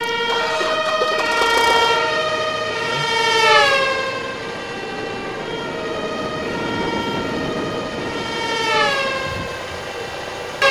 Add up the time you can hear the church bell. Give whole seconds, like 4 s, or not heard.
not heard.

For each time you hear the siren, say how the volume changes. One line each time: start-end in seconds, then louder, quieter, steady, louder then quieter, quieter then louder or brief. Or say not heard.
0.0-10.6 quieter then louder.